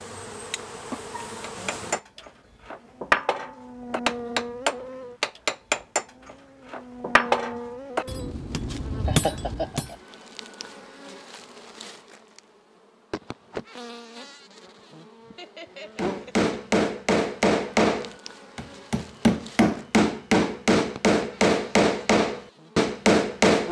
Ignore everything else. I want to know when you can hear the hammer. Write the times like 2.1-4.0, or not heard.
1.4-9.9, 15.9-23.6.